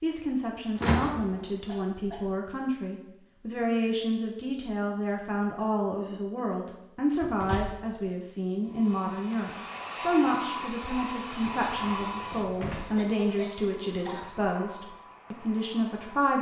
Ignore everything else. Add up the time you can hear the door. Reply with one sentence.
The door can be heard for 3 seconds in total.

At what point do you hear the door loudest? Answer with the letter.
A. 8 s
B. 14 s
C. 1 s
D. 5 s
C.